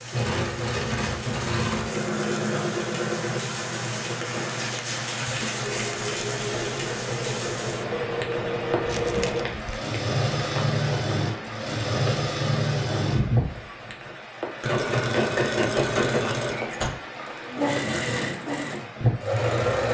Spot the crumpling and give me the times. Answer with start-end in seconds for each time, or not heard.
8.8-9.8.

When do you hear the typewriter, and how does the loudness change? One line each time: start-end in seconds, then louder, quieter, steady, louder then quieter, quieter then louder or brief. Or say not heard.
not heard.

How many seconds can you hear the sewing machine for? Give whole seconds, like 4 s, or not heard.
20 s.